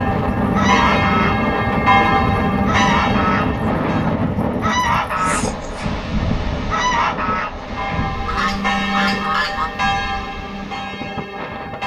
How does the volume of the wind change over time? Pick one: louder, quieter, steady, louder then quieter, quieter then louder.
quieter.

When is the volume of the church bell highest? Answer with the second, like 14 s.
2 s.